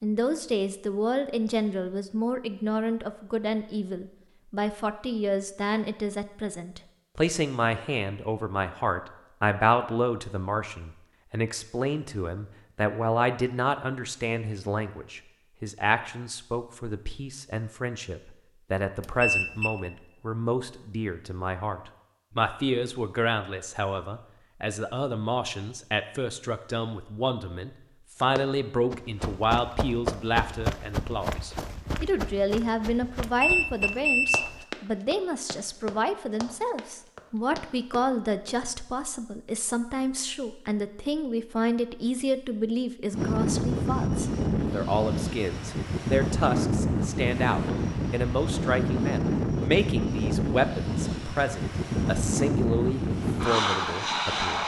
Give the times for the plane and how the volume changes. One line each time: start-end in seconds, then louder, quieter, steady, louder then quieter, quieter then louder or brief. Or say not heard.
43.1-54.6 steady.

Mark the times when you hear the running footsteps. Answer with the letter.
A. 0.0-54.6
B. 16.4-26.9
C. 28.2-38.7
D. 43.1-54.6
C.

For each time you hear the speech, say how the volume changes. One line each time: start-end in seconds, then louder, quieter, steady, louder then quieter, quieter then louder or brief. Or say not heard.
0.0-54.6 steady.